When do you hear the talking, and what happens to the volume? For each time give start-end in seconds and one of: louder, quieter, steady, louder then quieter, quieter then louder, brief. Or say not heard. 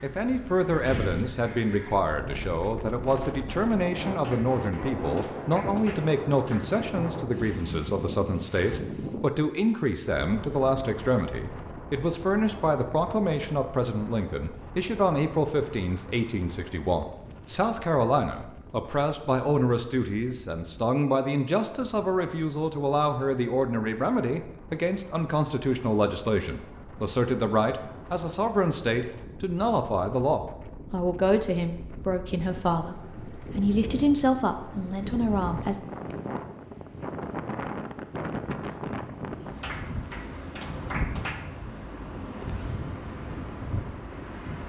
0.0-35.8 steady.